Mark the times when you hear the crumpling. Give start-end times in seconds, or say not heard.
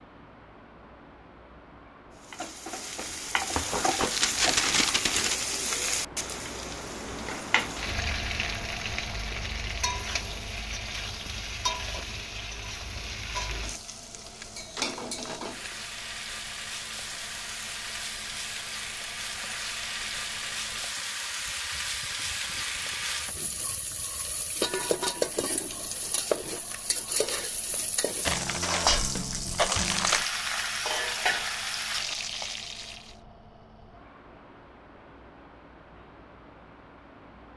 3.0-5.4, 14.1-15.8, 28.2-30.2.